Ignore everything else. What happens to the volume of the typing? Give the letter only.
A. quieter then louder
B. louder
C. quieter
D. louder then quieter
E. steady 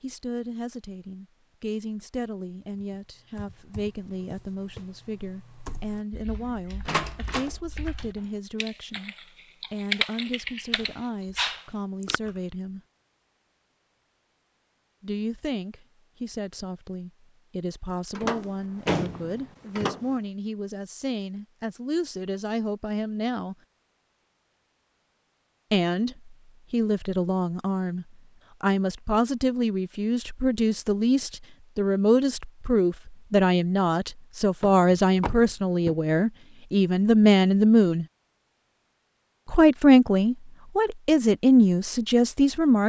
B.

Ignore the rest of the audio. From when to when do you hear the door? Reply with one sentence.
You can hear the door from 6.8 to 7.5 s, from 18.1 to 20.1 s and from 34.6 to 36.0 s.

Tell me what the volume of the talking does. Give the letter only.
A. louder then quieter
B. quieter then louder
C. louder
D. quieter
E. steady
C.